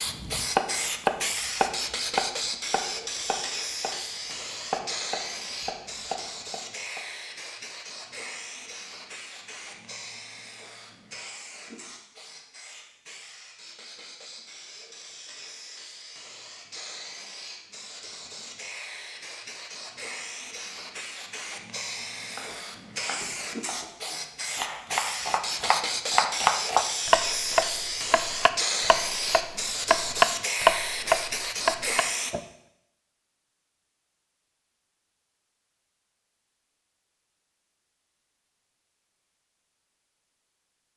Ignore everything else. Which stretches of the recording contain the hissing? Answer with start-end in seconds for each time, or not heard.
0.0-32.4.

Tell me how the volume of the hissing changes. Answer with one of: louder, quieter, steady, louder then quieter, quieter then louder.
quieter then louder.